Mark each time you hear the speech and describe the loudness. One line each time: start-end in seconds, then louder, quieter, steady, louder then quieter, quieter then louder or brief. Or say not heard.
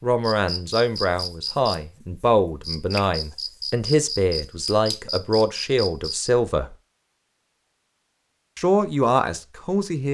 0.0-6.8 steady
8.6-10.0 brief.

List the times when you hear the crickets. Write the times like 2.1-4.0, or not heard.
0.2-6.3.